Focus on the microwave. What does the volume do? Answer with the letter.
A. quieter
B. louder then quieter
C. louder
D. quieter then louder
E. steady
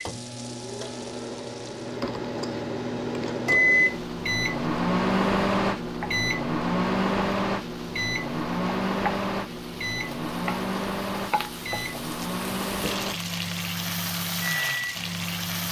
B.